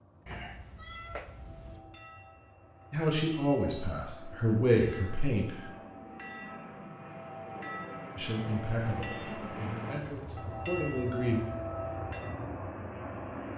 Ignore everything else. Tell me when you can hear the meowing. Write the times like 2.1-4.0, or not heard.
0.2-1.9.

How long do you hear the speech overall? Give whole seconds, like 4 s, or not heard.
6 s.